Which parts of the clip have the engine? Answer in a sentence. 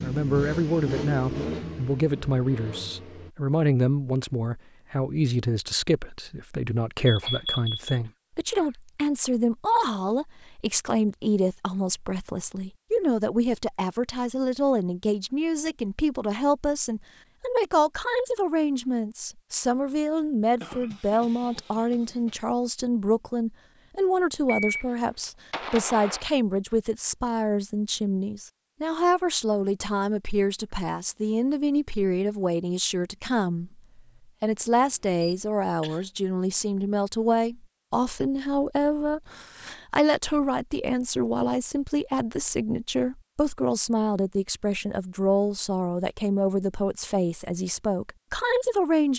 The engine can be heard from 0.0 to 3.3 s.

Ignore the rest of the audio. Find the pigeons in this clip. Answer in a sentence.
You can't hear the pigeons here.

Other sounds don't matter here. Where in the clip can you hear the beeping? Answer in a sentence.
You can hear the beeping from 7.0 to 7.9 s, from 24.4 to 26.2 s and from 34.9 to 35.5 s.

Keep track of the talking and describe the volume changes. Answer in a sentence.
The loudness of the talking stays about the same.